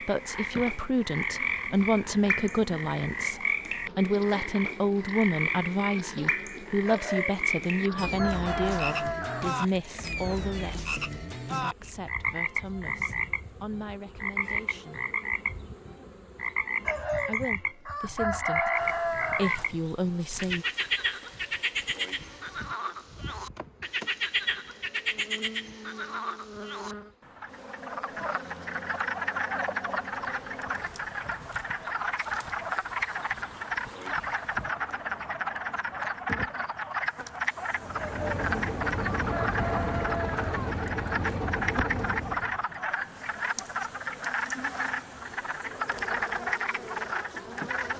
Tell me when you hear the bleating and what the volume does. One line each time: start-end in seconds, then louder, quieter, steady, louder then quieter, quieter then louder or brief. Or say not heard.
not heard.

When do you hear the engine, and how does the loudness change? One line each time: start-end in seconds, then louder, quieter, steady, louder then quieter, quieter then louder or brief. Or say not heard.
37.7-42.6 steady.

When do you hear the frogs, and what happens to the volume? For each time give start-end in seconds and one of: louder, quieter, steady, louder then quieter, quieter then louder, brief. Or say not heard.
0.0-47.9 steady.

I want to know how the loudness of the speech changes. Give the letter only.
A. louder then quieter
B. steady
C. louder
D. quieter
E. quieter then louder
E.